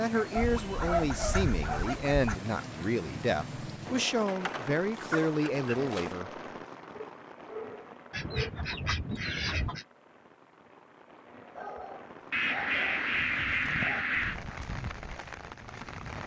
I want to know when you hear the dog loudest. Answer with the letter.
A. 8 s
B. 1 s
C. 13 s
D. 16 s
B.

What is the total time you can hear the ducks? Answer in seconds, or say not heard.
8 s.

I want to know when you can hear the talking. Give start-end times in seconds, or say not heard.
0.0-6.3.